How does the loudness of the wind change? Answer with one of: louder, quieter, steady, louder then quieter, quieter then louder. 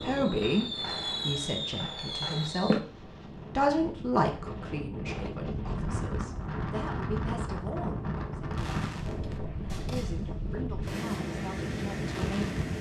louder.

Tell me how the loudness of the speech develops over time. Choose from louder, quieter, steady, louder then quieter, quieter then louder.
quieter.